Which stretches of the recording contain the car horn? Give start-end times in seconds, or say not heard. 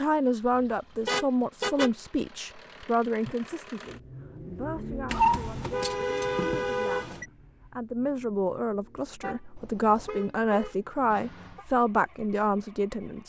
1.1-1.9, 5.0-7.2, 9.2-11.7.